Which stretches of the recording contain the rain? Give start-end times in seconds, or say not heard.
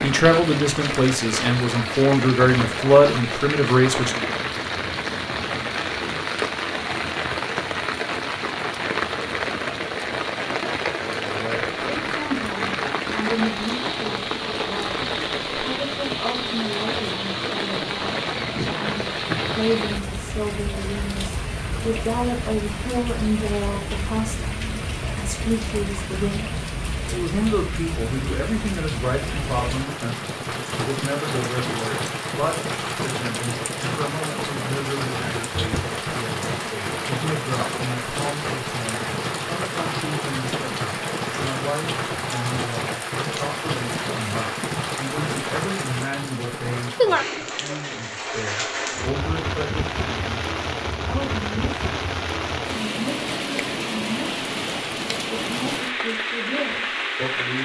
0.0-57.6.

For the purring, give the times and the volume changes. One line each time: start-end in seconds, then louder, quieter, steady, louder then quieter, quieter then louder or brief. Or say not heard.
not heard.